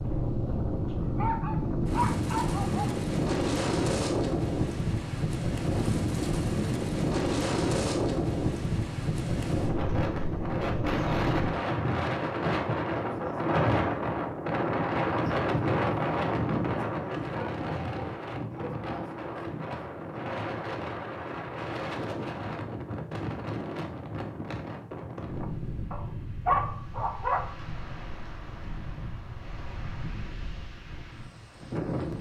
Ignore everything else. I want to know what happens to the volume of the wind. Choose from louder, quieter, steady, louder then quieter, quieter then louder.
quieter.